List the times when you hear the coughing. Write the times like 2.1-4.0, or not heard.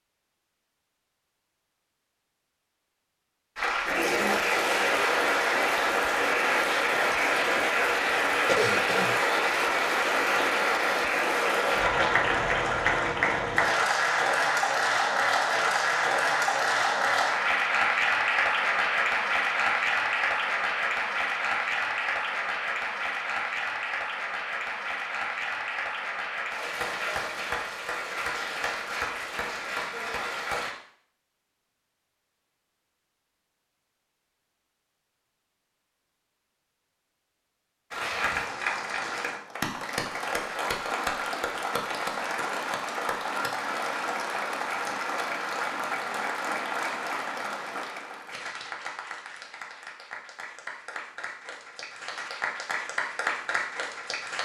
8.4-9.2.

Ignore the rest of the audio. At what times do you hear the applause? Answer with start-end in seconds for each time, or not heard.
3.5-30.8, 37.9-54.3.